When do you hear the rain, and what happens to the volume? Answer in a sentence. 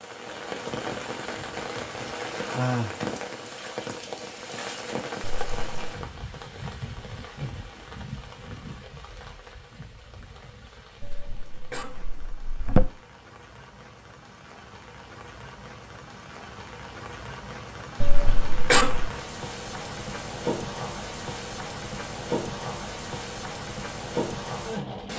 You can hear the rain from 0.0 to 25.1 s, getting quieter then louder.